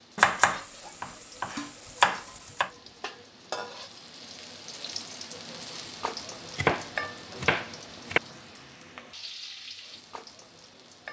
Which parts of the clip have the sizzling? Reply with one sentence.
You can hear the sizzling from 0.0 to 11.0 s.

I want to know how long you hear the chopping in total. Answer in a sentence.
The chopping can be heard for 4 seconds in total.